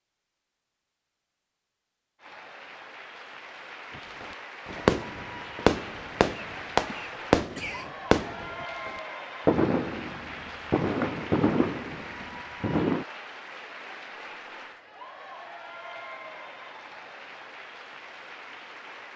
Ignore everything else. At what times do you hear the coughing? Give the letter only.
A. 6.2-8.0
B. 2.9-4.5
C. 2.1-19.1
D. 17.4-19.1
A.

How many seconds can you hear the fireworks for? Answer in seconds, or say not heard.
9 s.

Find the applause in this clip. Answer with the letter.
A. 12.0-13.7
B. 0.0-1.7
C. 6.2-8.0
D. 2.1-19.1
D.